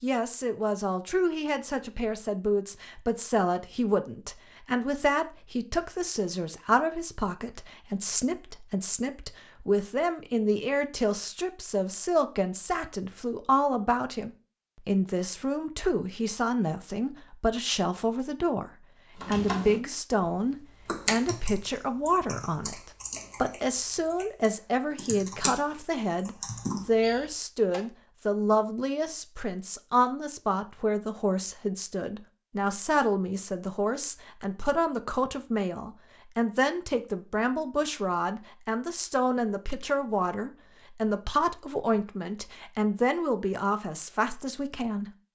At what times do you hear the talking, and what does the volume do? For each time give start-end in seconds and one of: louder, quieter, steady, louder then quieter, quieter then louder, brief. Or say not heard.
0.0-45.1 steady.